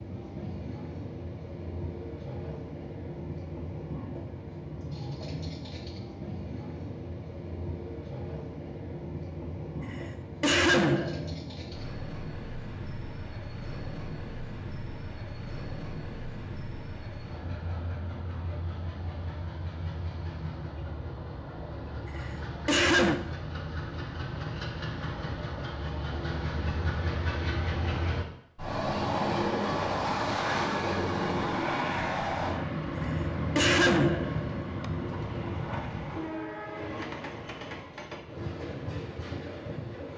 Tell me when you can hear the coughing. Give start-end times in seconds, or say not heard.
9.9-11.3, 22.1-23.2, 33.0-34.9.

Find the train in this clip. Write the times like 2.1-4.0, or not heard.
0.0-40.1.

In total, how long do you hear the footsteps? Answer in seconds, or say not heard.
not heard.